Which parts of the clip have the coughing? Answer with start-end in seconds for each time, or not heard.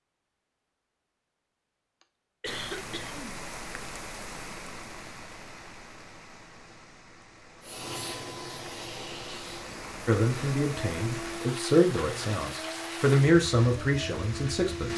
2.4-3.4.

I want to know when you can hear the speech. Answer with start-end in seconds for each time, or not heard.
10.1-14.9.